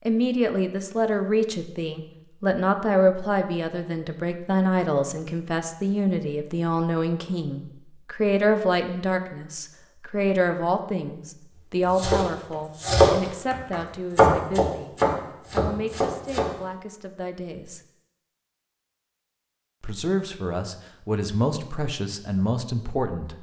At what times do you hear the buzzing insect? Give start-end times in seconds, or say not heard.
not heard.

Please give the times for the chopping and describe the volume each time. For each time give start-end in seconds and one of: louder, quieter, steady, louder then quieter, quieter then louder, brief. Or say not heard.
11.8-16.5 louder then quieter.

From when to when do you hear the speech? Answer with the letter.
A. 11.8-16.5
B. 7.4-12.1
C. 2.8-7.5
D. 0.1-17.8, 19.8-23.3
D.